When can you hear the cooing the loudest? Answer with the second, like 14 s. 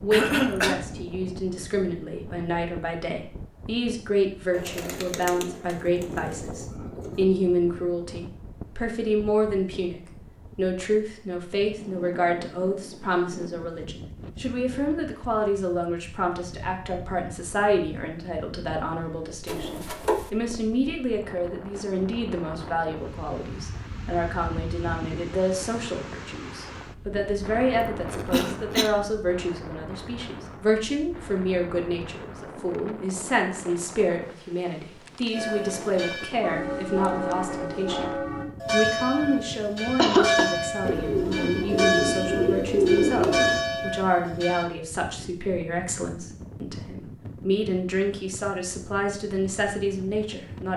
43 s.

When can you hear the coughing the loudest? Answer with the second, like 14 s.
40 s.